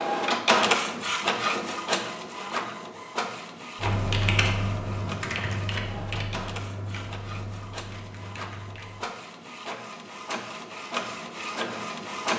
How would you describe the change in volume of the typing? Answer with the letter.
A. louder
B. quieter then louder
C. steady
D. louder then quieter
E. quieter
E.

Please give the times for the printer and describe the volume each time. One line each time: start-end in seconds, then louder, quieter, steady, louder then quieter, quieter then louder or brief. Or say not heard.
0.0-12.3 quieter then louder.